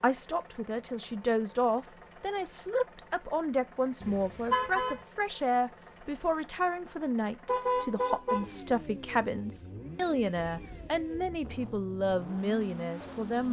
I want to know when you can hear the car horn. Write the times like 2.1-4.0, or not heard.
4.0-5.0, 7.5-8.4.